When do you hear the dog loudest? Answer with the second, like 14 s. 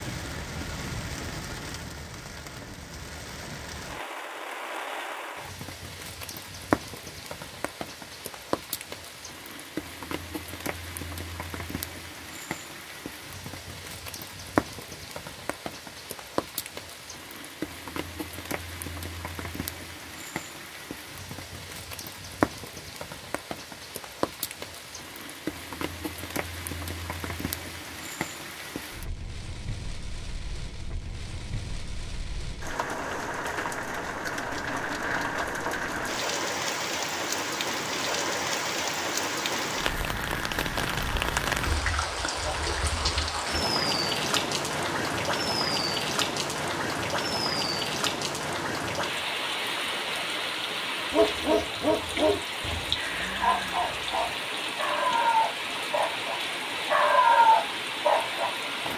57 s.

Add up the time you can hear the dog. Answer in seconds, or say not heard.
8 s.